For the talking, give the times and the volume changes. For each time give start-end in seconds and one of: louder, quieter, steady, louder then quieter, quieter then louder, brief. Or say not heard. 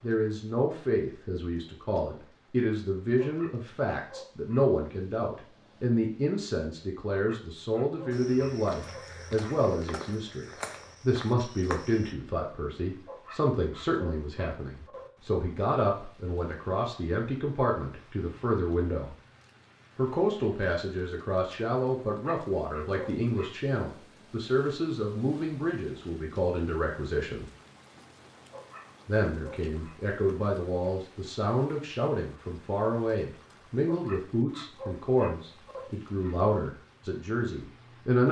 0.0-19.1 steady
19.9-27.4 steady
29.1-38.2 steady.